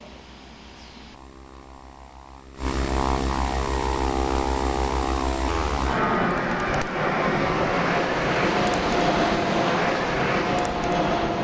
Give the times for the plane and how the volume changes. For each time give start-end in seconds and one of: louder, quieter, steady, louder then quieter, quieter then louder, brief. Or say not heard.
0.0-11.4 louder.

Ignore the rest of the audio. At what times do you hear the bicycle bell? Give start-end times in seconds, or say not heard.
not heard.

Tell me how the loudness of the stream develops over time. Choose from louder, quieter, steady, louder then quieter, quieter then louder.
louder then quieter.